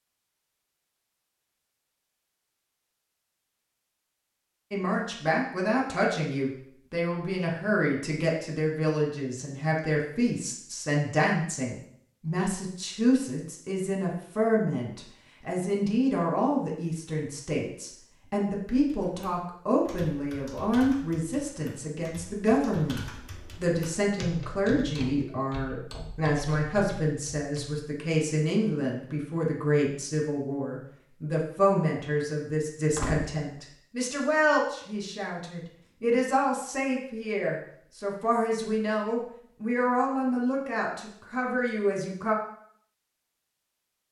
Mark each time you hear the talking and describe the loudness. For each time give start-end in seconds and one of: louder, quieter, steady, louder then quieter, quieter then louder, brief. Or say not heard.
4.7-42.4 steady.